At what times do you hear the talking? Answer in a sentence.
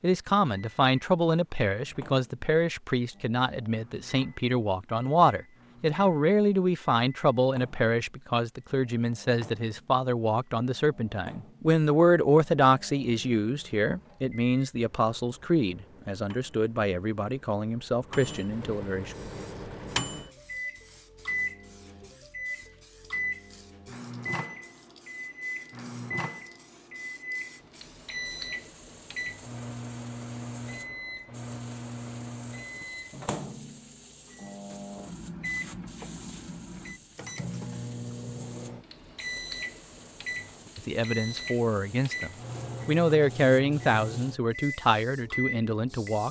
The talking can be heard from 0.0 to 19.1 s and from 40.8 to 46.2 s.